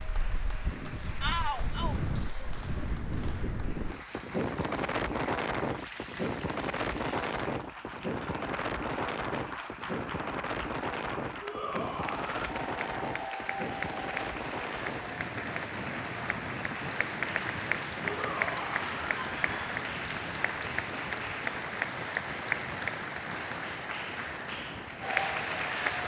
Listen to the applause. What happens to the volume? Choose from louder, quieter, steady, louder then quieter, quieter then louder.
louder.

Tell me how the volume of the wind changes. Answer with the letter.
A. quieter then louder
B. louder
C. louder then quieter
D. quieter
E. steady
D.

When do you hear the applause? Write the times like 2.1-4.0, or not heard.
0.0-26.0.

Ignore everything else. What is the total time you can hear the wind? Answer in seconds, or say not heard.
26 s.